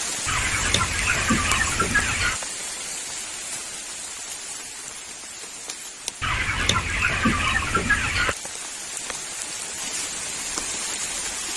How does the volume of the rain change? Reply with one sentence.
The volume of the rain goes down, then up.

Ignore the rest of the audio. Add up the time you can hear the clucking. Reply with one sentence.
The clucking can be heard for 4 seconds in total.